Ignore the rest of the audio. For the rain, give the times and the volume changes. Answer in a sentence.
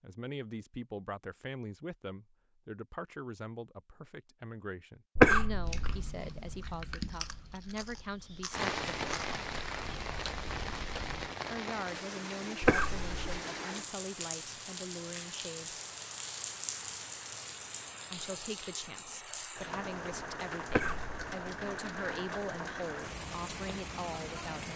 You can hear the rain from 8.5 to 24.7 s, at a steady volume.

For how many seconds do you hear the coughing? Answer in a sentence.
The coughing can be heard for 2 seconds in total.